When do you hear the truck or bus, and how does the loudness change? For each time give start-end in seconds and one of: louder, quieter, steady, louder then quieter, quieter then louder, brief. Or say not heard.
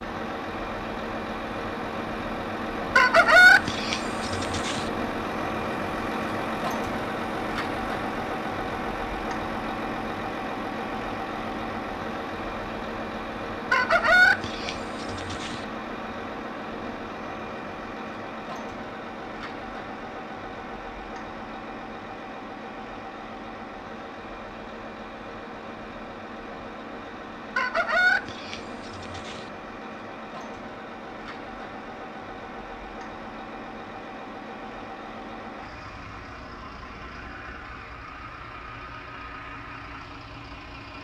0.0-40.9 quieter.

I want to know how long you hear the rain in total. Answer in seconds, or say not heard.
not heard.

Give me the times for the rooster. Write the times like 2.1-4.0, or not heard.
3.0-4.8, 13.7-15.6, 27.6-29.4.